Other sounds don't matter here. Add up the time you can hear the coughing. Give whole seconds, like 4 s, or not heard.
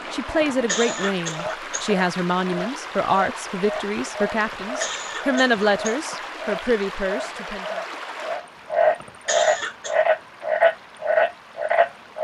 4 s.